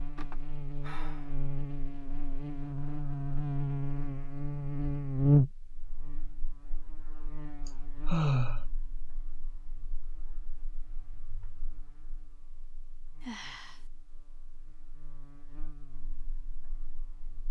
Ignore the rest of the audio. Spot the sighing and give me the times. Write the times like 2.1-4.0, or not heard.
0.1-1.3, 7.7-8.6, 13.2-13.8.